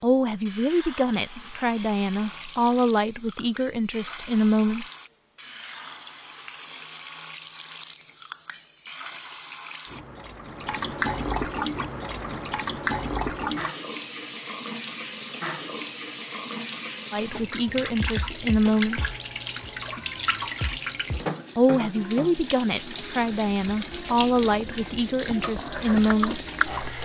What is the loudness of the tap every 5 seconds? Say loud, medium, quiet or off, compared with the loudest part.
medium, medium, loud, loud, loud, loud.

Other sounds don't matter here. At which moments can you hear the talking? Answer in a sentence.
The talking can be heard from 0.0 to 4.8 s, from 17.1 to 19.1 s and from 21.6 to 26.4 s.